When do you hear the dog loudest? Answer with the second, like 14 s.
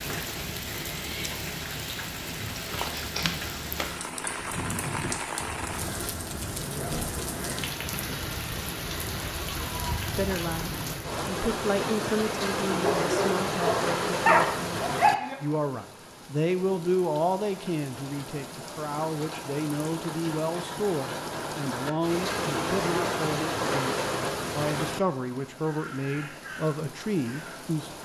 14 s.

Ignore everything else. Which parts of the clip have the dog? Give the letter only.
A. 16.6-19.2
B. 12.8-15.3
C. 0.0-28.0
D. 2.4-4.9
B.